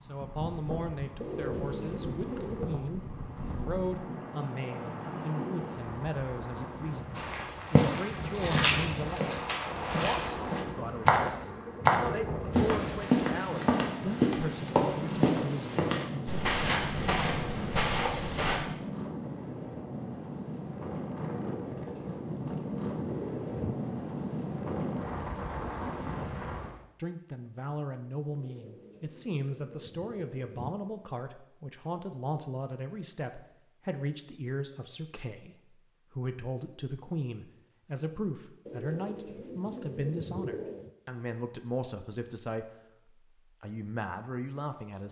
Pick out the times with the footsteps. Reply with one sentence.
You can hear the footsteps from 7.2 to 18.6 s.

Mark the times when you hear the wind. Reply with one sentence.
The wind can be heard from 0.0 to 26.8 s.